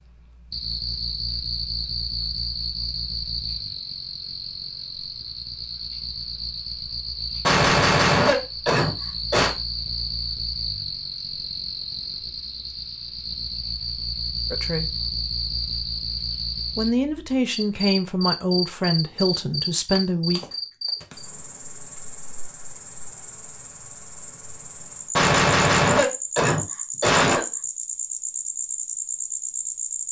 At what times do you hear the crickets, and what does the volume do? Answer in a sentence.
The crickets can be heard from 0.0 to 30.0 s, at a steady volume.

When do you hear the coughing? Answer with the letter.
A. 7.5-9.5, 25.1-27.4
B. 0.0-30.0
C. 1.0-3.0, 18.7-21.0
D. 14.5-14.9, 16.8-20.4
A.